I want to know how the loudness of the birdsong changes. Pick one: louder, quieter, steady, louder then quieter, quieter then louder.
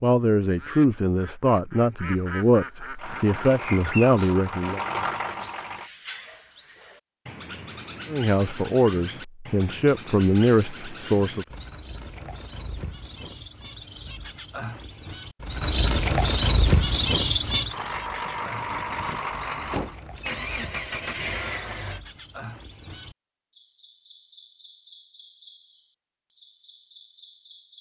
louder then quieter.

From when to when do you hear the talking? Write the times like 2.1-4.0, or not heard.
0.0-4.8, 8.1-11.4.